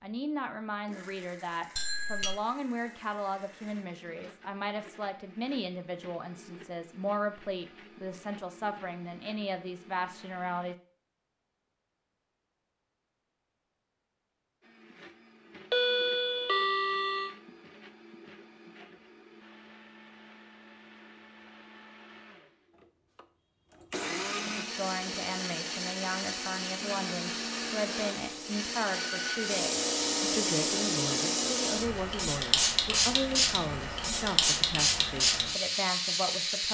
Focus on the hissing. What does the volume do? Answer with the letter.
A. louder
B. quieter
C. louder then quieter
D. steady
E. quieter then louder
A.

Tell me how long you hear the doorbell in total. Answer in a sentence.
The doorbell can be heard for 3 seconds in total.